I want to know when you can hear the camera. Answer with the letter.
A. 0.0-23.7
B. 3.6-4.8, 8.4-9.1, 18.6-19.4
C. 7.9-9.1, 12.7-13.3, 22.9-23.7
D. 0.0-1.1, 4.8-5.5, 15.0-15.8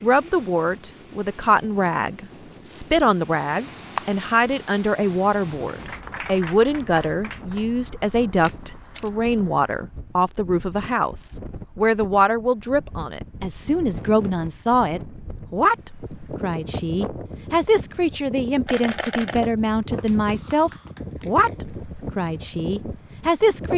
B.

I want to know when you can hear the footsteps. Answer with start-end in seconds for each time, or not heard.
not heard.